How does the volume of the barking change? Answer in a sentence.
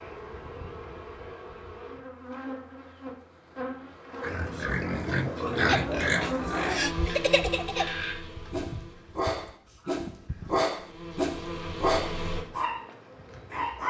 The loudness of the barking goes up, then down.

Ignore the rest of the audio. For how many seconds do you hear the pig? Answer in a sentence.
You can hear the pig for 3 seconds altogether.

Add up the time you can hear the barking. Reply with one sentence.
The barking can be heard for 8 seconds in total.